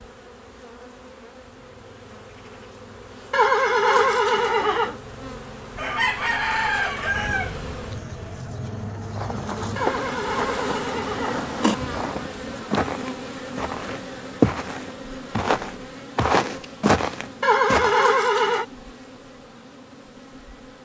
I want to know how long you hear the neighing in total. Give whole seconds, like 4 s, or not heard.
5 s.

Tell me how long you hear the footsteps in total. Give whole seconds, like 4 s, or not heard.
9 s.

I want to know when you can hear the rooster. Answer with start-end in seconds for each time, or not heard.
5.8-8.4.